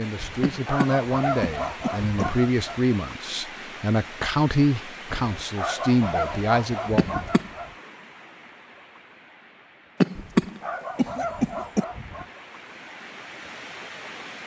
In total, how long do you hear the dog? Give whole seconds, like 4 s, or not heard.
7 s.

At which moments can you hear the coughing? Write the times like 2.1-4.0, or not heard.
0.4-2.2, 7.0-7.5, 10.0-11.8.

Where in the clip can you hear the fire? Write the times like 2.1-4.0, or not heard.
not heard.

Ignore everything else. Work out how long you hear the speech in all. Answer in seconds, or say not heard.
7 s.